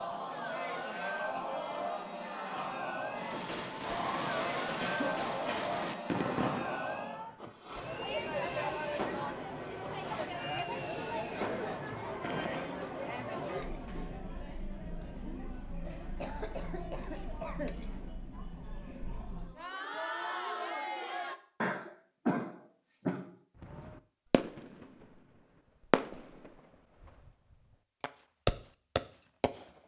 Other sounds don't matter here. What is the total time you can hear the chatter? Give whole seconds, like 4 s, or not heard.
21 s.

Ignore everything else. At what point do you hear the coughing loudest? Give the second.
22 s.